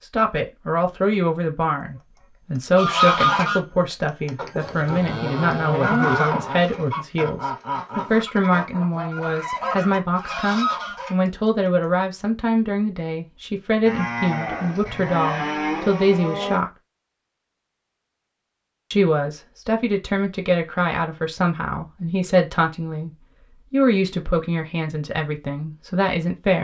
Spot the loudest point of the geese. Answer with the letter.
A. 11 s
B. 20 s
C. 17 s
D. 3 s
D.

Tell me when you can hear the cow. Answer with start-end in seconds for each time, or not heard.
4.5-6.5, 13.8-16.6.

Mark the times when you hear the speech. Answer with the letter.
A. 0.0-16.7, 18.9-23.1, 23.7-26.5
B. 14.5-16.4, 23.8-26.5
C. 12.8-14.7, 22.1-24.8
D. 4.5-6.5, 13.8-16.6
A.